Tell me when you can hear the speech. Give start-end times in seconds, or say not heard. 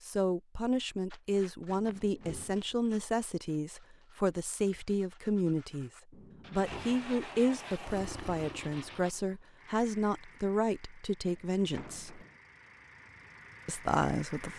0.0-5.9, 6.5-12.2, 13.7-14.5.